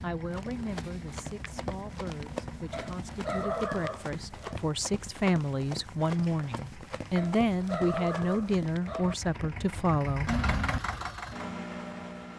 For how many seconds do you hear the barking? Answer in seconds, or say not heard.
4 s.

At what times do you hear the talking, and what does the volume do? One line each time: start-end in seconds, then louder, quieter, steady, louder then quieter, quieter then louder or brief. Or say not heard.
0.0-10.3 louder.